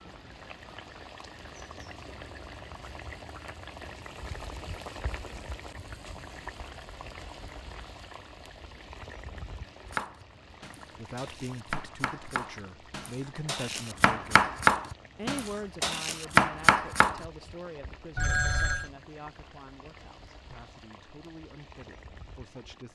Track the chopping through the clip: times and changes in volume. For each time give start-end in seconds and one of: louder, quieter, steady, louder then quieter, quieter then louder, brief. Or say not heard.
9.9-17.2 louder.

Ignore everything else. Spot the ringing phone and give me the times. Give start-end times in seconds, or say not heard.
18.1-18.9.